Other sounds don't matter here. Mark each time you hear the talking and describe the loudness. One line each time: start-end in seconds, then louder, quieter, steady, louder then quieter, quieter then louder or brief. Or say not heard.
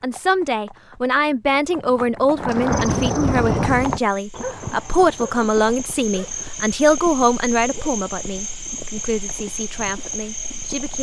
0.0-10.9 quieter.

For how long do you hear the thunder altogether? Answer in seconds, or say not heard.
2 s.